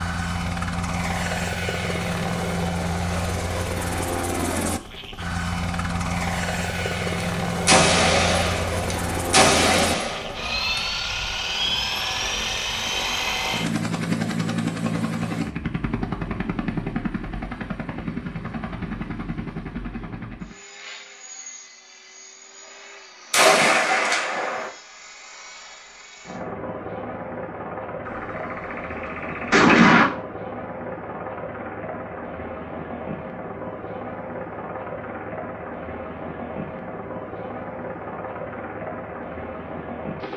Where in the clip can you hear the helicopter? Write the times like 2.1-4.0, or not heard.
0.0-40.3.